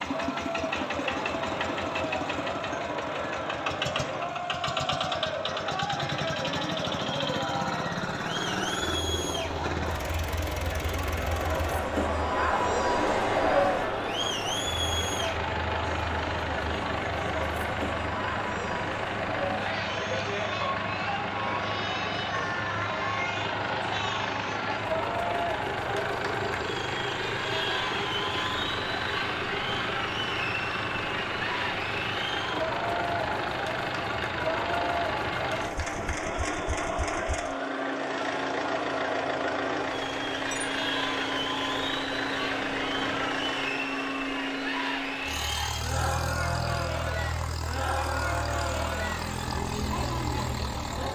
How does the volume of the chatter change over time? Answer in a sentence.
The loudness of the chatter stays about the same.